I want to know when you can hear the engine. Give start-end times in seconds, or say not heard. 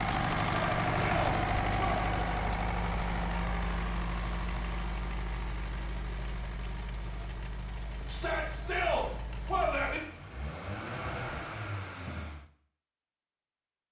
0.0-12.5.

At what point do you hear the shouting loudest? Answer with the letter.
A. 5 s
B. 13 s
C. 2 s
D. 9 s
D.